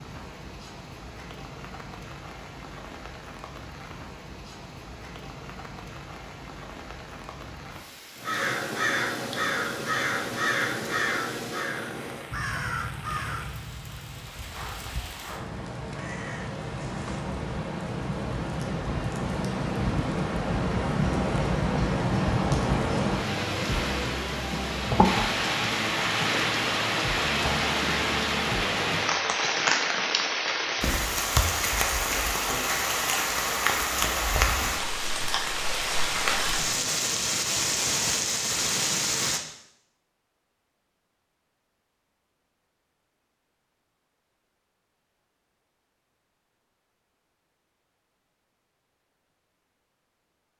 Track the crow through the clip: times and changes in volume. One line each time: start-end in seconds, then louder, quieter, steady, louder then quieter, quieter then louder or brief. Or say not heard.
8.2-17.4 quieter.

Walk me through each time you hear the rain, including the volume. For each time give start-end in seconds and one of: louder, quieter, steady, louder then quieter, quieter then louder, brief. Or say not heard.
0.0-39.4 louder.